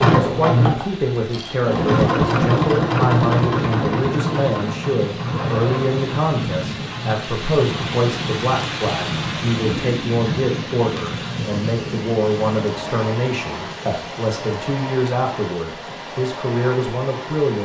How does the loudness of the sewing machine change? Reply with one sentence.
The volume of the sewing machine goes down.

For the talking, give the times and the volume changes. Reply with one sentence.
The talking can be heard from 0.2 to 17.5 s, at a steady volume.